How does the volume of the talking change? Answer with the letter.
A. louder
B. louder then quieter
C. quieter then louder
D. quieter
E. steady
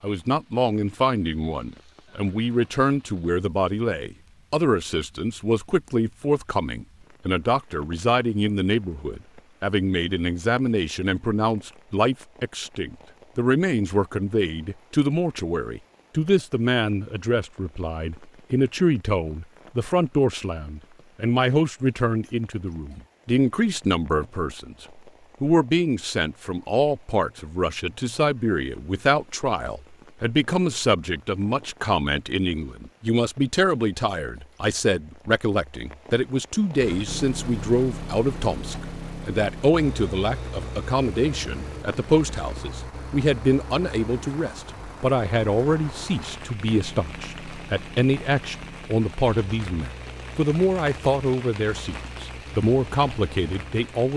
E.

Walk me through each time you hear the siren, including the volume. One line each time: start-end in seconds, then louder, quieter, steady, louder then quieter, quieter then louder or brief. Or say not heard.
not heard.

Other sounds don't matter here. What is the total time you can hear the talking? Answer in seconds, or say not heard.
54 s.